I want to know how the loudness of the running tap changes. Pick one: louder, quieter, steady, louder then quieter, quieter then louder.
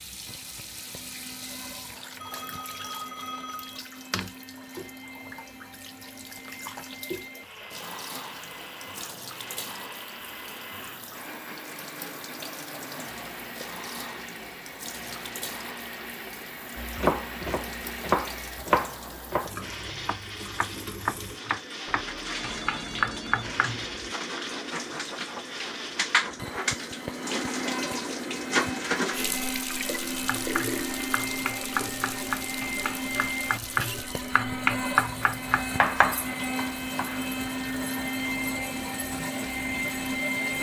louder then quieter.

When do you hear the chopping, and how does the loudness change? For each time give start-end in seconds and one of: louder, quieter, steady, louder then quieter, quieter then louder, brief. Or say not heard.
16.8-23.9 quieter then louder
30.2-37.3 louder.